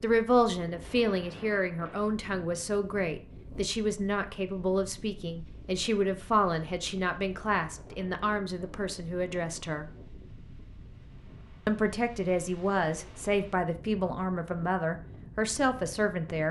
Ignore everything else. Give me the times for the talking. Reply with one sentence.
The talking can be heard from 0.0 to 9.8 s and from 11.7 to 16.4 s.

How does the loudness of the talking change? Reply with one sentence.
The loudness of the talking stays about the same.